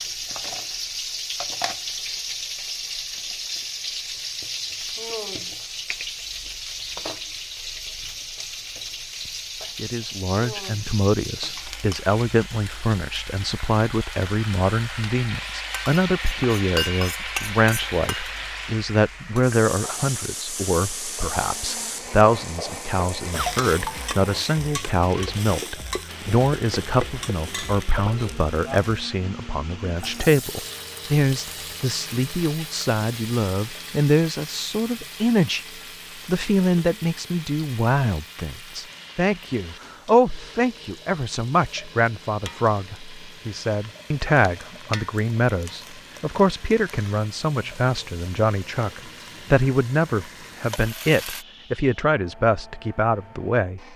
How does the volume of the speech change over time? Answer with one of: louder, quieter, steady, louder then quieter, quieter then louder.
steady.